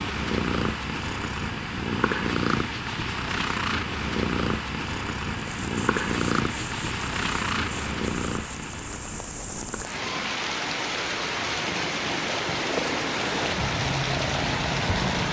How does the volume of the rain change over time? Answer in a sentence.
The loudness of the rain goes up.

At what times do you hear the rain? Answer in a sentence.
The rain can be heard from 5.3 to 15.2 s.